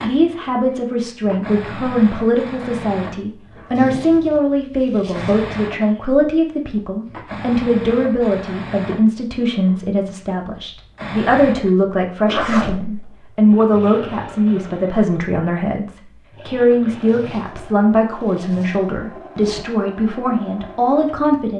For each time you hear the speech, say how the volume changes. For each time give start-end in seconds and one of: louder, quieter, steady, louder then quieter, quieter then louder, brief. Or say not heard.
0.0-21.5 steady.